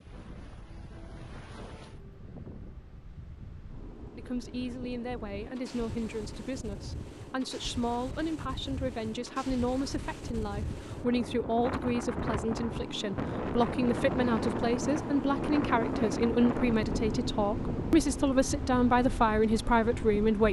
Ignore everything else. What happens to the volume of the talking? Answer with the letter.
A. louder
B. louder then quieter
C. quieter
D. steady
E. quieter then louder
A.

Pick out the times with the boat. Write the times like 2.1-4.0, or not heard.
0.0-20.4.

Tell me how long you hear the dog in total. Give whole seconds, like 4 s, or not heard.
not heard.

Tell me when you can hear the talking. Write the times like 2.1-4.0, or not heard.
4.2-20.4.